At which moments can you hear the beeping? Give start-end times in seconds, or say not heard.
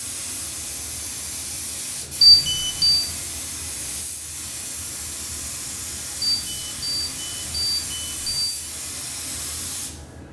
2.2-3.0, 6.2-8.4.